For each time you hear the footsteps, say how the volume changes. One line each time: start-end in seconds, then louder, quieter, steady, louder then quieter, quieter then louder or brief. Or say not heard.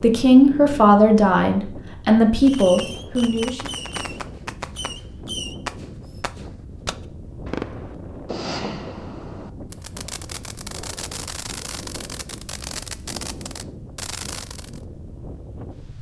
not heard.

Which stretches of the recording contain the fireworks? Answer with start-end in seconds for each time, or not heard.
2.4-14.8.